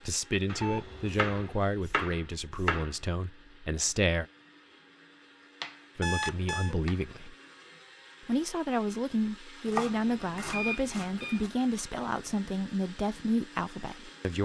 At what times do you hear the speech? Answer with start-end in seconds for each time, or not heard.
0.1-4.2, 6.0-7.3, 8.2-14.3.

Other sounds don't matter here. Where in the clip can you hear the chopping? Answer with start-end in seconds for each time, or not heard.
0.5-3.0, 5.6-7.0, 9.7-11.5.